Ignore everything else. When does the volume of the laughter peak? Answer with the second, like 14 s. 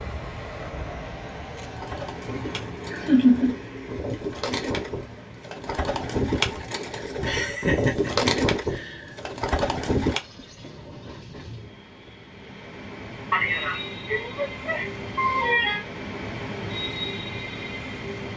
3 s.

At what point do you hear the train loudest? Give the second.
17 s.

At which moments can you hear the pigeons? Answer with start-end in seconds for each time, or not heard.
1.6-10.2.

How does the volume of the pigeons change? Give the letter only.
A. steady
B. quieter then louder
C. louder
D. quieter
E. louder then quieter
C.